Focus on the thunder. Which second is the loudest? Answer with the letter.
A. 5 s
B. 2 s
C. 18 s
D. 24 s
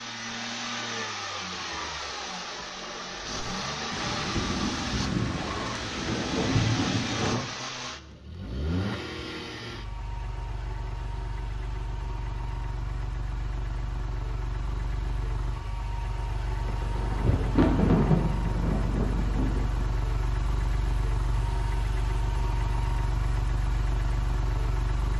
C.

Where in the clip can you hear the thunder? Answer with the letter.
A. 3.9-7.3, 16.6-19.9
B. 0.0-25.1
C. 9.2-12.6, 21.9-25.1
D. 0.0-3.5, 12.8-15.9
A.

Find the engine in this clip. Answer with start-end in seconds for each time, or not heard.
0.0-25.1.